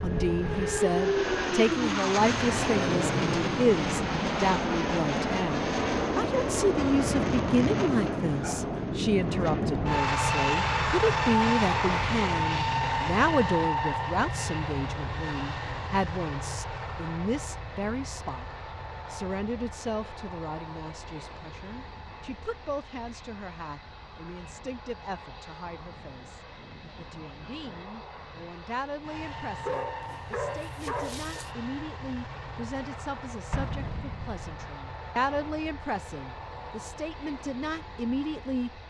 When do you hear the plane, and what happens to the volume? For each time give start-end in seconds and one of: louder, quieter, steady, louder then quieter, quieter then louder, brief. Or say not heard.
0.0-38.8 quieter.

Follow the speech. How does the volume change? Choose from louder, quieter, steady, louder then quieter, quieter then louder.
quieter then louder.